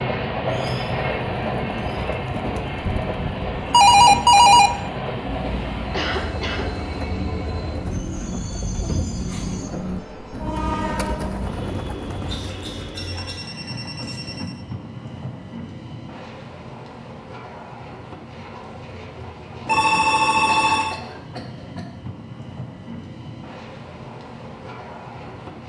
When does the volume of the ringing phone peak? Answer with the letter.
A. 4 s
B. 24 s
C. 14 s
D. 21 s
A.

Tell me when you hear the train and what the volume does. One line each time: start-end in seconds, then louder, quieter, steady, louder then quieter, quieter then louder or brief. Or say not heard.
0.0-25.6 quieter.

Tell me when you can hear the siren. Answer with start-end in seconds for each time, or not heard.
not heard.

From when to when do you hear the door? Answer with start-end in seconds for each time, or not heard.
not heard.